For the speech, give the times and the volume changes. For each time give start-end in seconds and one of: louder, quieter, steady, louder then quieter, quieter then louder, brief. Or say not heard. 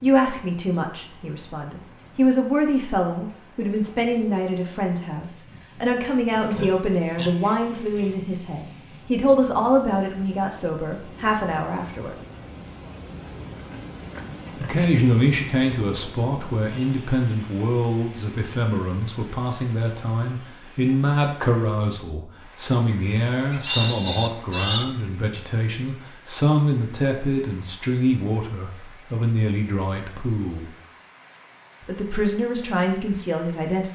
0.0-12.2 steady
14.6-30.7 steady
31.9-33.9 brief.